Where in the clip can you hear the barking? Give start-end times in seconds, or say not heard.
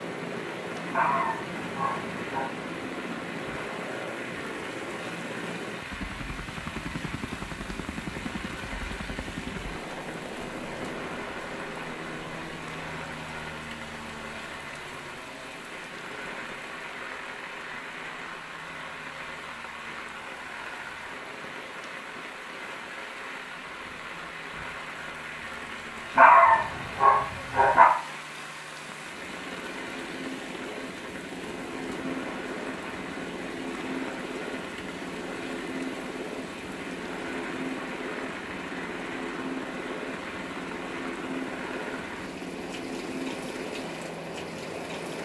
0.9-2.5, 26.1-27.9.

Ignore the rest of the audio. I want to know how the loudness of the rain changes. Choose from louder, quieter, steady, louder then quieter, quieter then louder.
steady.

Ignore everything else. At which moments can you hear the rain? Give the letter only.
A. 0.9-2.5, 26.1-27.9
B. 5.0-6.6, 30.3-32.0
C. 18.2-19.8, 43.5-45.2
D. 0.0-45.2
D.